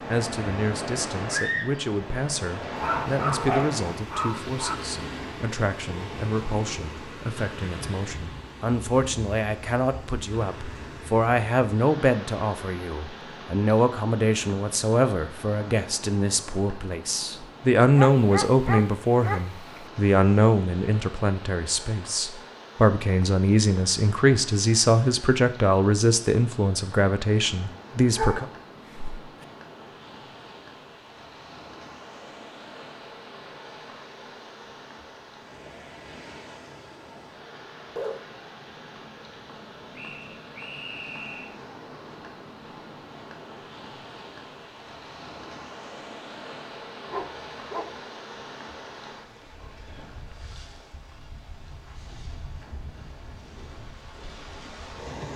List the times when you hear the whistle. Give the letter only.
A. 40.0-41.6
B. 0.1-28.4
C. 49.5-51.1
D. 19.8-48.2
A.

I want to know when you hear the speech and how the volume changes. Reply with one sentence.
The speech can be heard from 0.1 to 28.4 s, getting louder.